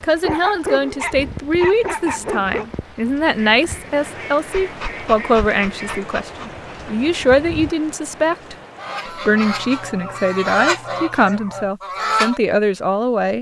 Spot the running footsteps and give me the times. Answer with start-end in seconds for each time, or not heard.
not heard.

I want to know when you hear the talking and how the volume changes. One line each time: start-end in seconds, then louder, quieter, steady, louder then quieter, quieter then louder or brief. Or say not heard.
0.0-13.3 steady.